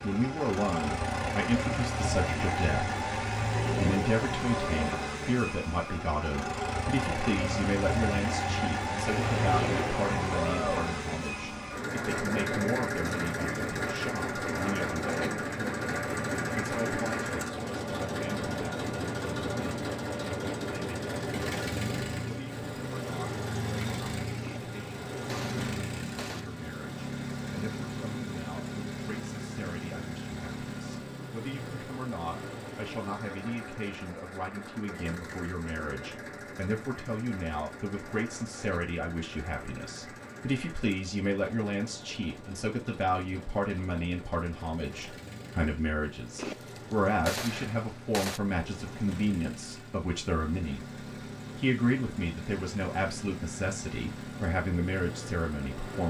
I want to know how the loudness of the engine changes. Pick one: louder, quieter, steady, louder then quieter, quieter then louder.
quieter.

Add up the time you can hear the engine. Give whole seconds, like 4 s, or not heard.
56 s.